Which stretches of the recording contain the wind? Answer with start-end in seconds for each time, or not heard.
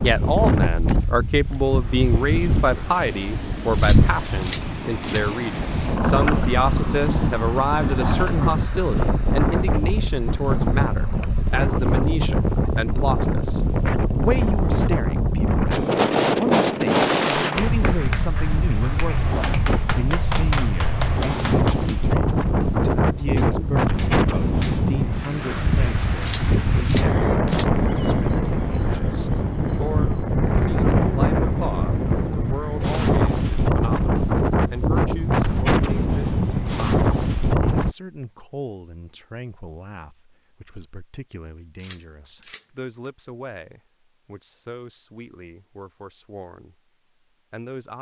0.0-38.0.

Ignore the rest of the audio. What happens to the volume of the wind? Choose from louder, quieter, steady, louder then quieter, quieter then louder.
steady.